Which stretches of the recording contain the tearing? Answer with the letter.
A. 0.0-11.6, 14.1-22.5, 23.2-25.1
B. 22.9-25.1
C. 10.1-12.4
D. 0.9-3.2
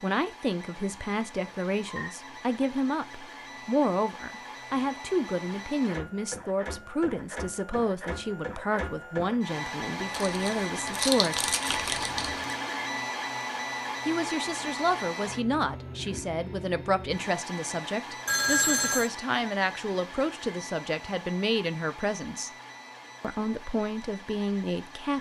C.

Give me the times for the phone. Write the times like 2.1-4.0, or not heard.
1.2-2.1, 11.7-12.6, 18.2-19.1.